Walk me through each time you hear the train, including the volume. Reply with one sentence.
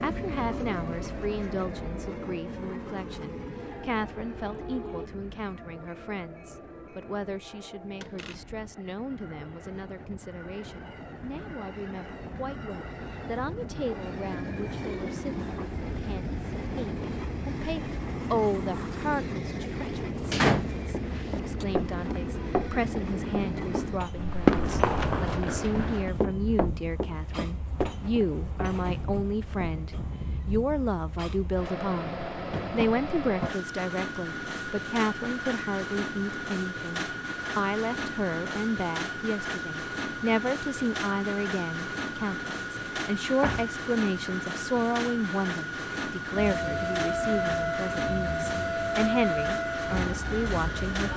You can hear the train from 0.0 to 51.1 s, getting louder.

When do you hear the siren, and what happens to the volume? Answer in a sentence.
You can hear the siren from 0.0 to 5.1 s, at a steady volume; and from 46.4 to 51.1 s, getting quieter.